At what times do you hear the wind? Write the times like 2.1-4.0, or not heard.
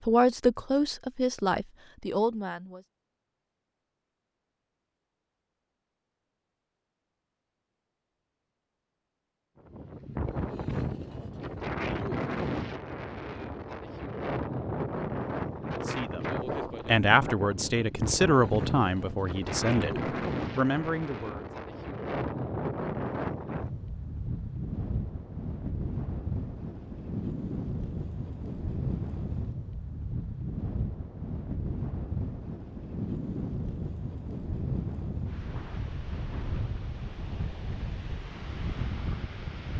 9.6-39.7.